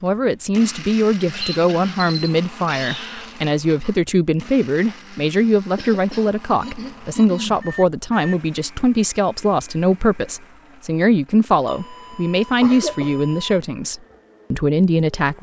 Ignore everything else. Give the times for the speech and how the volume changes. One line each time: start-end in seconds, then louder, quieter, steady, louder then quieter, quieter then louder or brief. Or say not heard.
0.0-15.3 steady.